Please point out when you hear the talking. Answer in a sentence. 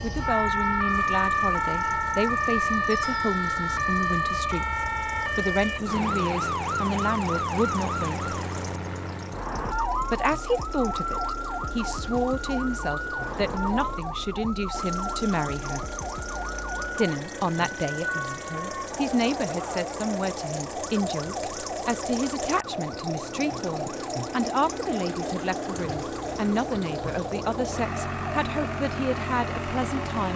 You can hear the talking from 0.0 to 8.3 s, from 10.1 to 15.9 s and from 16.9 to 30.3 s.